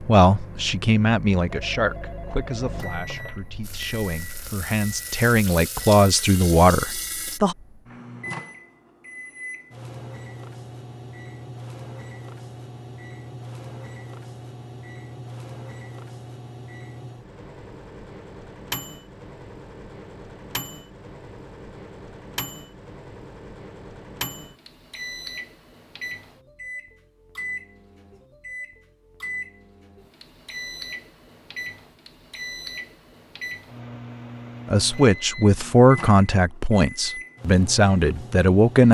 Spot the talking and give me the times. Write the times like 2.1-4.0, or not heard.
0.1-7.5, 34.7-38.8.